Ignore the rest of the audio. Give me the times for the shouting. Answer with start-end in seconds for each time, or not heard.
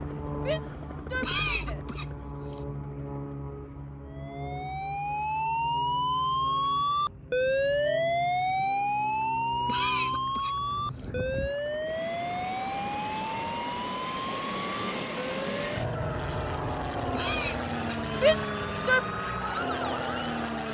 0.3-1.8, 18.2-19.0.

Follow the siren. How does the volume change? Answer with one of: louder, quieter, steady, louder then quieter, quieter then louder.
quieter.